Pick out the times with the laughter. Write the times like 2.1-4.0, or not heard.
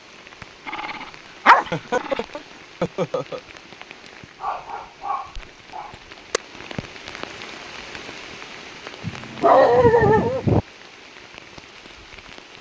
1.4-3.4.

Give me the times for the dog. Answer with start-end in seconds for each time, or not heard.
0.7-2.2, 4.4-6.4, 9.0-10.6.